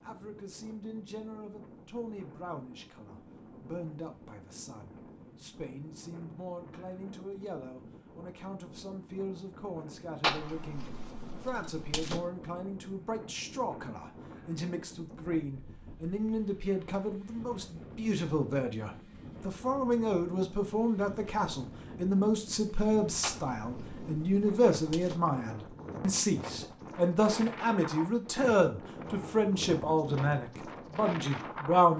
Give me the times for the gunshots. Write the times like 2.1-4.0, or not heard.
10.2-12.2, 23.2-25.2.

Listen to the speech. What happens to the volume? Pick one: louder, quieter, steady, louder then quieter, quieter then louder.
louder.